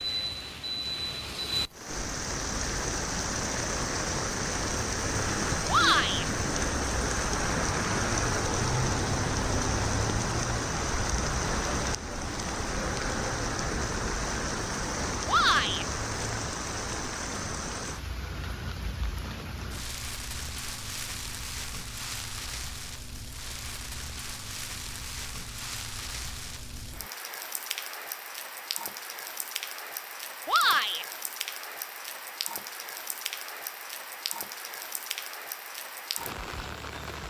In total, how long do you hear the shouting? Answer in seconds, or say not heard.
2 s.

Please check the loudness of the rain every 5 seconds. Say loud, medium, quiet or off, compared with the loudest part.
loud, loud, loud, medium, medium, medium, medium, medium.